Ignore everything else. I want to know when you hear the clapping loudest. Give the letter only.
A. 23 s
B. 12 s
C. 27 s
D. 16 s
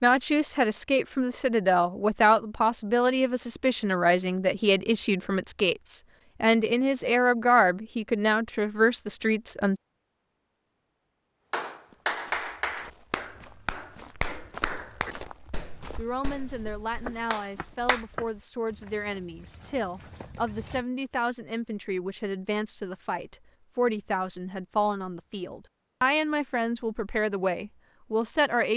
B.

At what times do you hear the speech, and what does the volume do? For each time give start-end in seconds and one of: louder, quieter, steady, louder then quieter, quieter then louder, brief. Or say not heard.
0.0-9.8 steady
15.9-28.7 louder.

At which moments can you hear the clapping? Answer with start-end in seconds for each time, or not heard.
11.5-18.1.